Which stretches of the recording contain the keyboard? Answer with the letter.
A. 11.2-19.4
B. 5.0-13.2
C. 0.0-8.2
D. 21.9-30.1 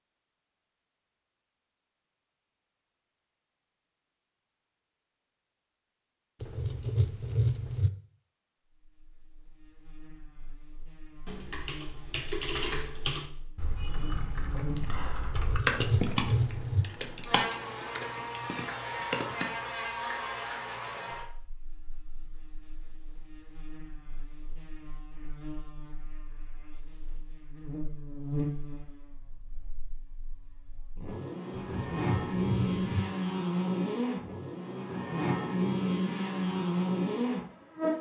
A.